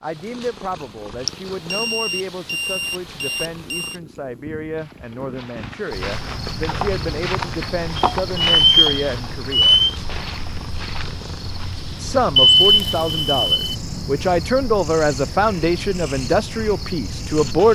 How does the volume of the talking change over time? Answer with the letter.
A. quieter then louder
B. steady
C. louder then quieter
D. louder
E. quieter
D.